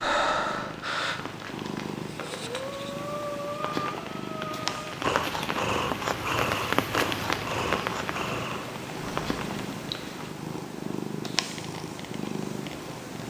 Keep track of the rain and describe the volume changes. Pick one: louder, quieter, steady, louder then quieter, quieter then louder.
louder then quieter.